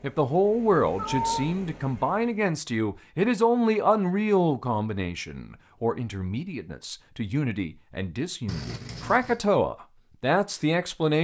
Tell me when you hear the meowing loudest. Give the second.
1 s.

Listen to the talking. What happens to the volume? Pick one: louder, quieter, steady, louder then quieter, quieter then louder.
quieter then louder.